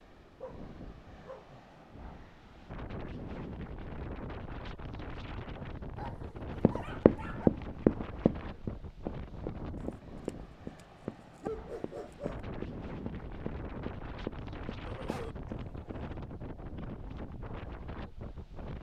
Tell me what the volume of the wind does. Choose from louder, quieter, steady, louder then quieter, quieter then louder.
steady.